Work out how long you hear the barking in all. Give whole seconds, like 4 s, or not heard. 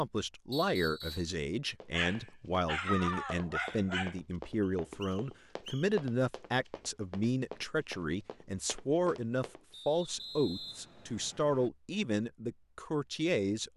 2 s.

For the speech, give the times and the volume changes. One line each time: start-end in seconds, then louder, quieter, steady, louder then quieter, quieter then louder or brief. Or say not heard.
0.0-13.7 steady.